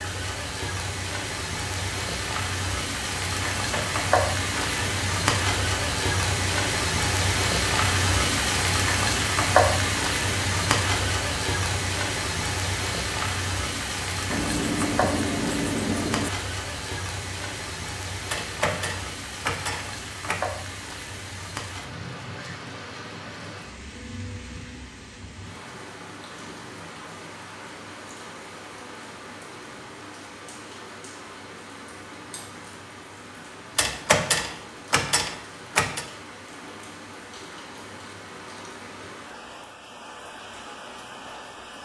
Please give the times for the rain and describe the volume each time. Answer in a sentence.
You can hear the rain from 0.0 to 41.8 s, getting quieter.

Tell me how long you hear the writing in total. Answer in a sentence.
The writing can be heard for 2 seconds in total.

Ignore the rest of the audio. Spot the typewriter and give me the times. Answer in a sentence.
The typewriter can be heard from 3.5 to 4.8 s, from 18.3 to 20.4 s and from 33.8 to 36.0 s.